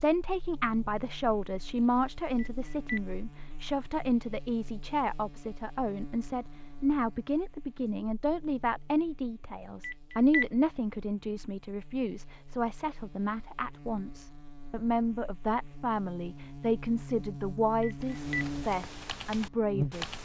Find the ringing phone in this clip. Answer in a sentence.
You can hear the ringing phone from 2.4 to 3.0 s, from 9.8 to 10.4 s and from 17.8 to 18.4 s.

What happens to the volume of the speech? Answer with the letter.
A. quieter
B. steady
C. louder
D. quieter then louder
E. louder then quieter
B.